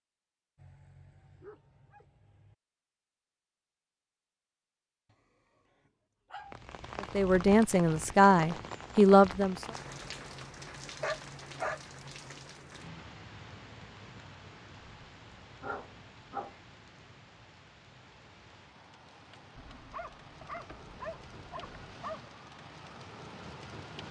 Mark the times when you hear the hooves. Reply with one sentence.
You can't hear the hooves here.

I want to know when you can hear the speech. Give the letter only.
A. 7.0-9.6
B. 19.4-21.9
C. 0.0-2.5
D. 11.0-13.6
A.